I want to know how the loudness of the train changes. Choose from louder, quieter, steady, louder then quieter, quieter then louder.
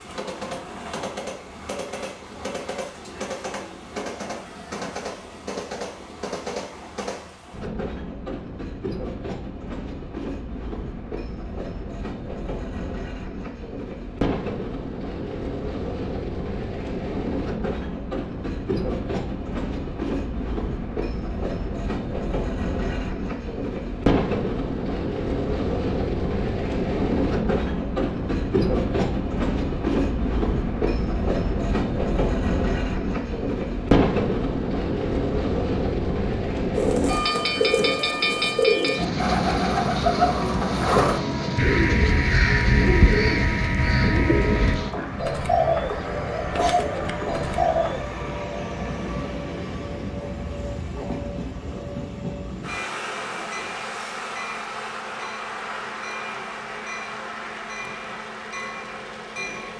louder then quieter.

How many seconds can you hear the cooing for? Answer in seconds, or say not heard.
11 s.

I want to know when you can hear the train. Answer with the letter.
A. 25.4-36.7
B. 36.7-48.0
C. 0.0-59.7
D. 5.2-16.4
C.